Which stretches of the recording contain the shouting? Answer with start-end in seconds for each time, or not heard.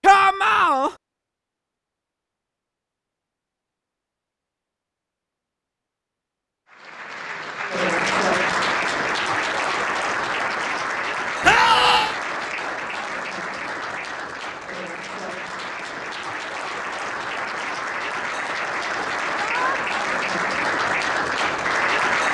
0.0-0.9, 11.4-12.2, 19.4-19.8.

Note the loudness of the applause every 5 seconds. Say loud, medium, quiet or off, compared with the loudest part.
off, loud, medium, medium, loud.